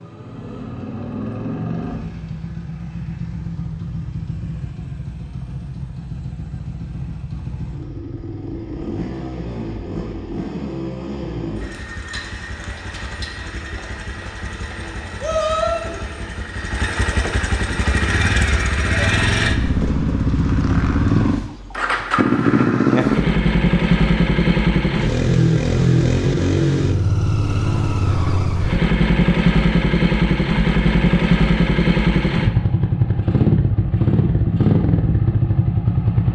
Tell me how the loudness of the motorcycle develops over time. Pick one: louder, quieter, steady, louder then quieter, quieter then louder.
louder.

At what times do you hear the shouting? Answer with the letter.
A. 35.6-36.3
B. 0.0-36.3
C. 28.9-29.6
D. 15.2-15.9
D.